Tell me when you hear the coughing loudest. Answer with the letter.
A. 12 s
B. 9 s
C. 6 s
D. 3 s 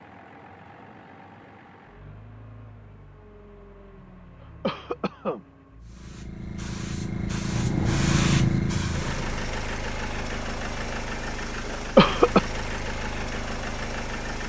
A.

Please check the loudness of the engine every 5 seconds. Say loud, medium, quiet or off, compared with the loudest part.
quiet, loud, loud.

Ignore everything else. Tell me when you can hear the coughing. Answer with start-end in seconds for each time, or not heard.
4.6-5.4, 11.9-12.4.